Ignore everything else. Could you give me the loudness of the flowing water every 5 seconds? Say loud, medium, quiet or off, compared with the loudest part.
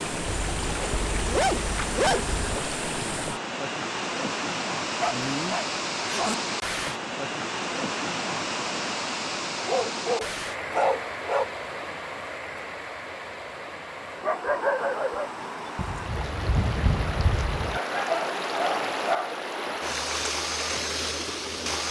loud, loud, medium, loud, loud.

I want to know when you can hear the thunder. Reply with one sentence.
You can hear the thunder from 15.8 to 17.8 s.